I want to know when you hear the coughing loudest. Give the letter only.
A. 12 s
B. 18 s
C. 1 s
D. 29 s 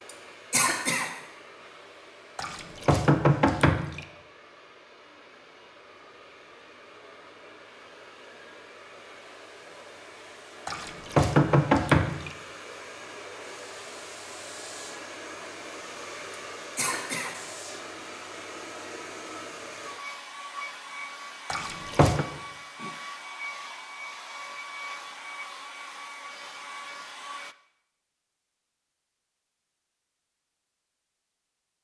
C.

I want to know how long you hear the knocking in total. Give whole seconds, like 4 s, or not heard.
4 s.